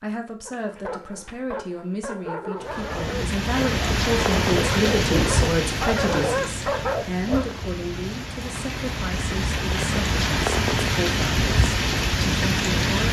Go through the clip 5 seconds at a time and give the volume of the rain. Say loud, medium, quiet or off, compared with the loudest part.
loud, medium, loud.